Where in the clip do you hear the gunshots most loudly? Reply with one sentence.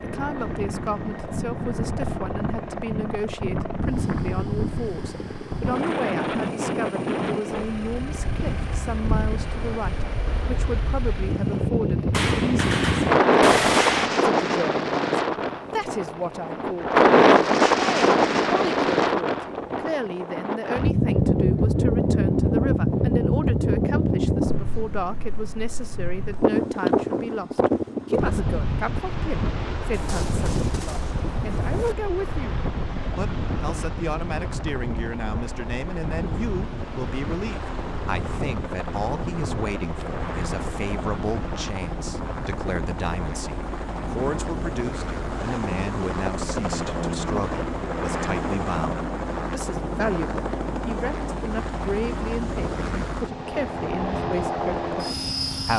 The volume of the gunshots peaks at 14 seconds.